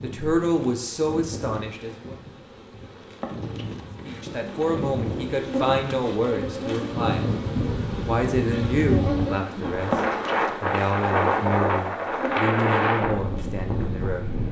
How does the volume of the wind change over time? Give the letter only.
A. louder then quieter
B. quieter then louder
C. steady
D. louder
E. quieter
D.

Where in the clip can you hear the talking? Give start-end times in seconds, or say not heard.
0.0-2.1, 4.0-7.2, 8.1-10.0, 10.6-14.3.